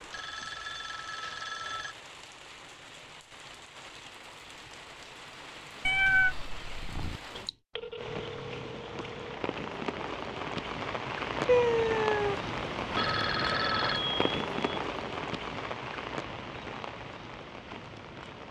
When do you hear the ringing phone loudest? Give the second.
14 s.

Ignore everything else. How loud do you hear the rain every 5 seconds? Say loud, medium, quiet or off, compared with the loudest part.
quiet, medium, loud, medium.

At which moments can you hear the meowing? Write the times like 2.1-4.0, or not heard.
5.8-7.2, 11.4-12.4.